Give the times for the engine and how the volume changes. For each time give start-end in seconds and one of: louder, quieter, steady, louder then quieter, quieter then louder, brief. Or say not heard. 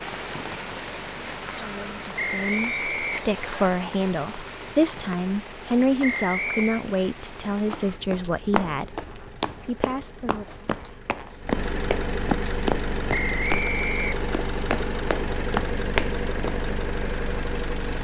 0.1-18.0 louder.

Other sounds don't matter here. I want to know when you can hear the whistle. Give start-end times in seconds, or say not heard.
2.1-3.7, 6.0-6.8, 13.1-14.2.